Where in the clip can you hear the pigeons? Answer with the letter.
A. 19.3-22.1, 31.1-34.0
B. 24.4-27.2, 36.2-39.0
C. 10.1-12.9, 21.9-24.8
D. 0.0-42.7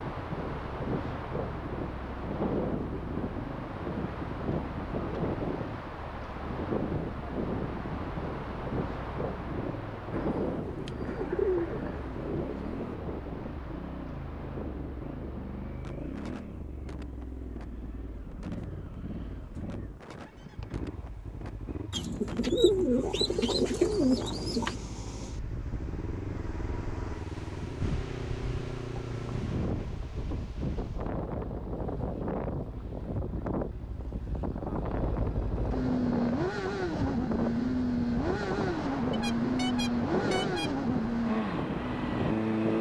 C.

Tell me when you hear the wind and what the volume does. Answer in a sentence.
The wind can be heard from 0.0 to 42.7 s, getting quieter then louder.